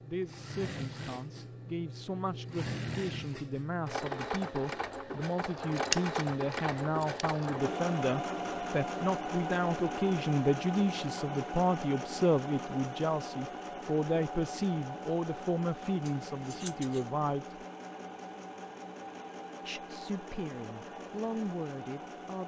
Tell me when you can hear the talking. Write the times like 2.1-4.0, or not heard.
0.0-17.6, 19.6-22.4.